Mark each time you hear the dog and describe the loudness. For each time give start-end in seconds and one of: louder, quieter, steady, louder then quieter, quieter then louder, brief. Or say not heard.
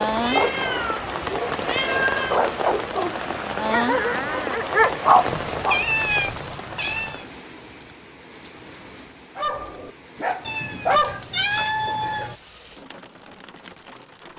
0.1-5.8 louder
9.3-11.2 brief.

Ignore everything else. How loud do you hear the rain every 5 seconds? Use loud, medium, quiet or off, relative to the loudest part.
loud, medium, quiet.